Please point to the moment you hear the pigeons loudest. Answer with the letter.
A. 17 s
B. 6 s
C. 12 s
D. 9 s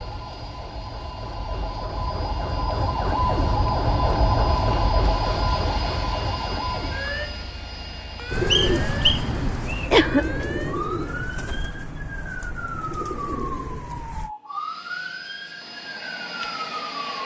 D.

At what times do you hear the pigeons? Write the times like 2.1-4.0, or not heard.
8.2-14.3.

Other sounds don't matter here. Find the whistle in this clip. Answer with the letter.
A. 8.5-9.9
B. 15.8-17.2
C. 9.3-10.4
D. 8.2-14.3
A.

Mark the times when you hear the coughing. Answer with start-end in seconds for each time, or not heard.
9.3-10.4.